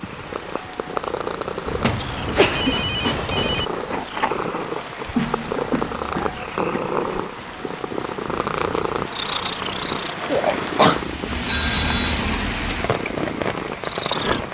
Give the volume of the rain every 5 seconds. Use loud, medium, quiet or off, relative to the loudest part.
medium, medium, loud.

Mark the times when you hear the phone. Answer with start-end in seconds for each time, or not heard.
1.6-3.6, 11.4-12.2.